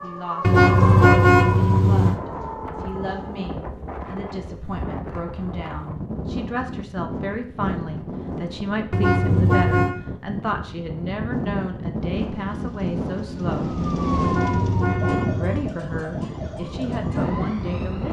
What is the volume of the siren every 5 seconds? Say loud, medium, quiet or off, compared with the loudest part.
loud, off, loud, medium.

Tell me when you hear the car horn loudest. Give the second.
1 s.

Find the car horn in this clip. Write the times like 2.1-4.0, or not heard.
0.4-2.2, 8.9-9.9, 14.2-15.7.